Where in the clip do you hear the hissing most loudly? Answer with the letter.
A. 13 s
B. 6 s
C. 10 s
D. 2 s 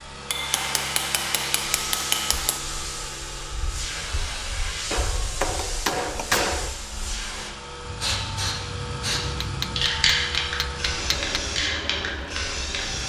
C.